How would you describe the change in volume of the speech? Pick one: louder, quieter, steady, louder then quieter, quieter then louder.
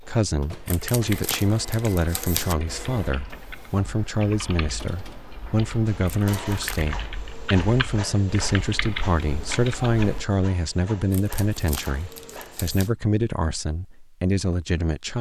steady.